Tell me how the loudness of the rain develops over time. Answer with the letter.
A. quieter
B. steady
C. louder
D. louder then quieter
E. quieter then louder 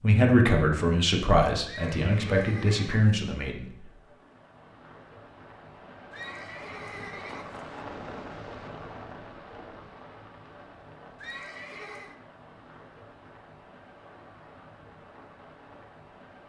D.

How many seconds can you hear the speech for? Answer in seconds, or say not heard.
4 s.